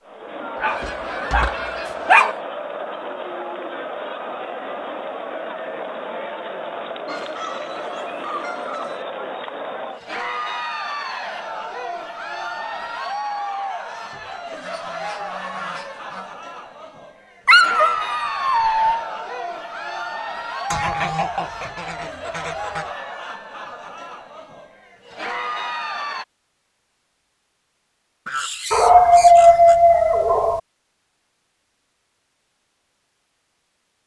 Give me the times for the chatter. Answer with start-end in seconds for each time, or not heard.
0.1-26.2.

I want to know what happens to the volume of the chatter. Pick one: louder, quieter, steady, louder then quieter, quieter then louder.
steady.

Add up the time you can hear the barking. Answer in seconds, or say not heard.
5 s.